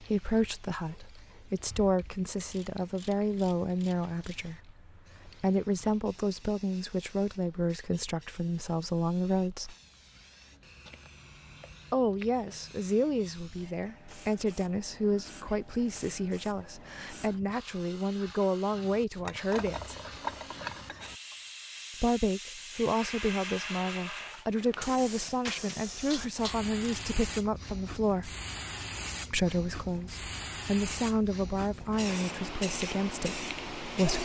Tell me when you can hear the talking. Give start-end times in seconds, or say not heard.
0.0-9.8, 11.9-19.9, 22.0-28.3, 29.3-34.1.